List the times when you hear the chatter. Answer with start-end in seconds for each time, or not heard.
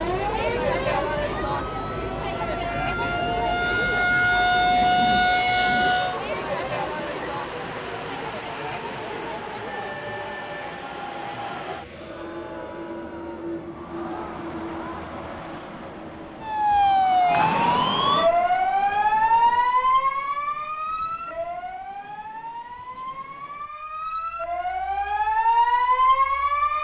0.0-19.9.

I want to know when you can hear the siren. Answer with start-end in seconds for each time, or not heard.
0.0-6.2, 16.4-26.7.